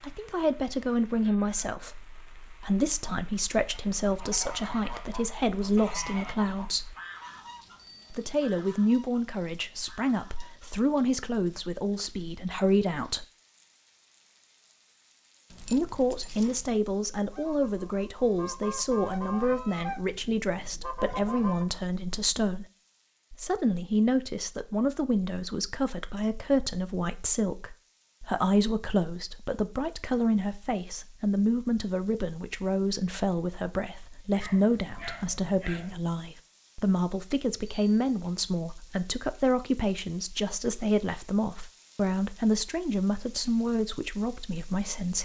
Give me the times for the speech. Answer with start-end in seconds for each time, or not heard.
0.0-7.0, 8.1-13.2, 15.6-22.6, 23.3-45.1.